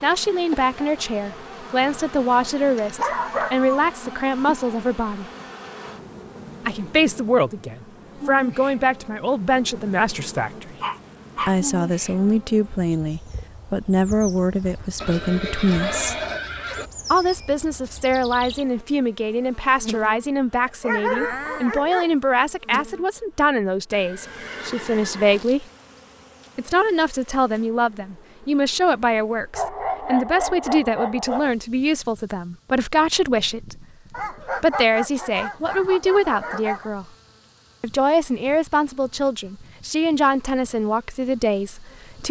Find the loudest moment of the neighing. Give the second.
16 s.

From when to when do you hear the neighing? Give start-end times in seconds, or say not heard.
15.0-16.9, 23.9-25.4.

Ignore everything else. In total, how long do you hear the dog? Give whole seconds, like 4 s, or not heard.
9 s.